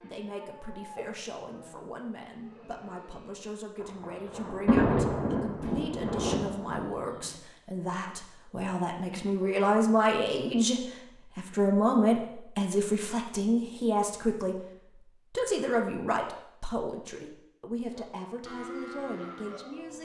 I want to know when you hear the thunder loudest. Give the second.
5 s.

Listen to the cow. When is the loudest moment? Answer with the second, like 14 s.
19 s.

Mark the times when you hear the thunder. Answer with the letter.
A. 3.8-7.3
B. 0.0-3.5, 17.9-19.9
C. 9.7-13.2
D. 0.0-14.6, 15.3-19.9
A.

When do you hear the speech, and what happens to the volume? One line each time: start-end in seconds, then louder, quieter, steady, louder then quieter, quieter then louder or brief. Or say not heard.
0.0-14.6 louder
15.3-19.9 quieter.